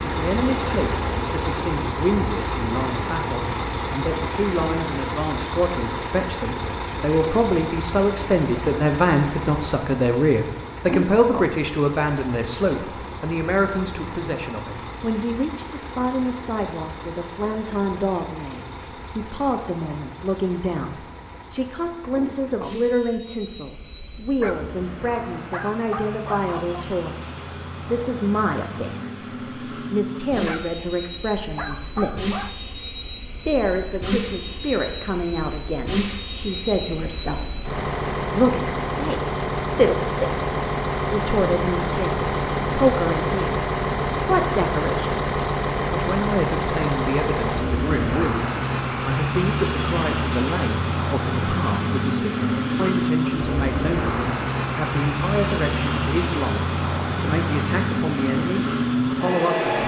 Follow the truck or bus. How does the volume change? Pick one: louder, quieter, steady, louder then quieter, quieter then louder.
quieter then louder.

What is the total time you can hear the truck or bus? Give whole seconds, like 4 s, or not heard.
60 s.